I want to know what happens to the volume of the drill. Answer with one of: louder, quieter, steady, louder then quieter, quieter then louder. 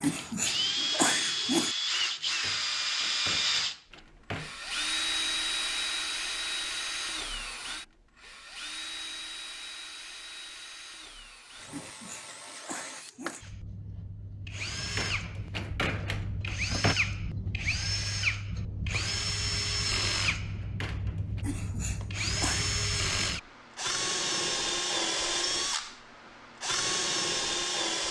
quieter then louder.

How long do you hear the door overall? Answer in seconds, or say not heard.
6 s.